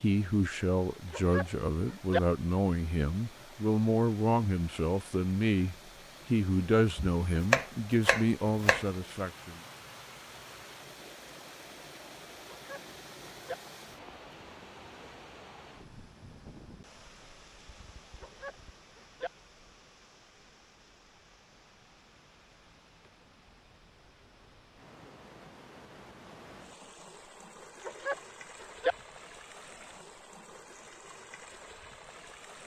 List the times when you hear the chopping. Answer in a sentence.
You can hear the chopping from 7.0 to 8.8 s.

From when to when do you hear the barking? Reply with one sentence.
You can hear the barking from 1.1 to 2.2 s, from 12.5 to 13.6 s, from 18.2 to 19.3 s and from 27.8 to 28.9 s.